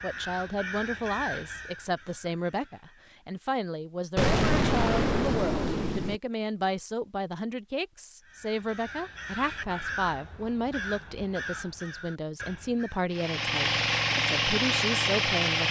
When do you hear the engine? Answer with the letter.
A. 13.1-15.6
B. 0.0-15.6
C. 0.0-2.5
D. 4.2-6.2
A.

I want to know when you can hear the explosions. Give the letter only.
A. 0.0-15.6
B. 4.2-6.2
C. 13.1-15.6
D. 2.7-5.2
B.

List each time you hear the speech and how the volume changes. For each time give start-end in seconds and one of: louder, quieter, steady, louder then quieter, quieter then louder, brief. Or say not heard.
0.0-15.6 steady.